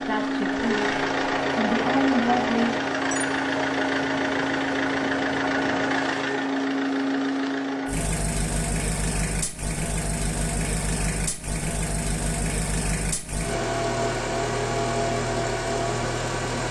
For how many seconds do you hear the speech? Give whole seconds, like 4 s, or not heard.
3 s.